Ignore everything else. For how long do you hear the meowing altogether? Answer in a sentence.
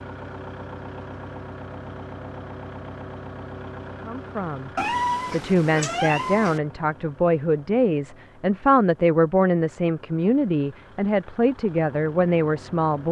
You can hear the meowing for 2 seconds altogether.